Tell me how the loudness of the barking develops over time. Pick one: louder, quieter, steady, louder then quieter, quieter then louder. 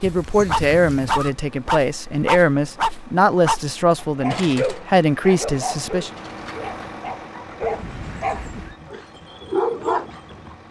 quieter then louder.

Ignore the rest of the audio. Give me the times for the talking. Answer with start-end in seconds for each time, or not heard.
0.0-6.1.